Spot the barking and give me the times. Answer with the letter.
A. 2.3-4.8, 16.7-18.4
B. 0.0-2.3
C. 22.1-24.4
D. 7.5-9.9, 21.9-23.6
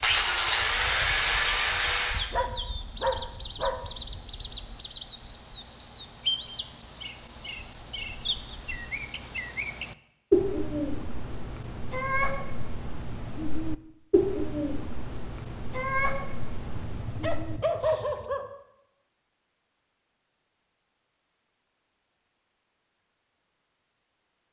A.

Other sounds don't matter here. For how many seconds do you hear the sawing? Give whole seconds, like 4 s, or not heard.
2 s.